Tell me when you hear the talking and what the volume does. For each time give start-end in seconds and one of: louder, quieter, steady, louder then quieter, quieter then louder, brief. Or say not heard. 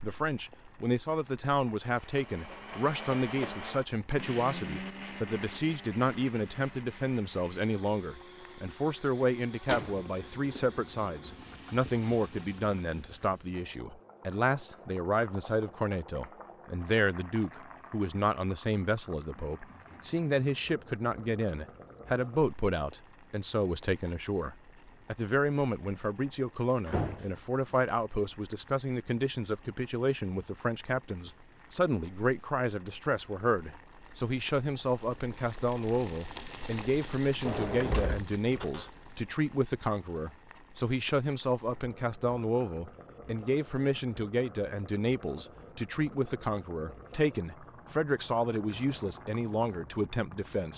0.0-50.7 steady.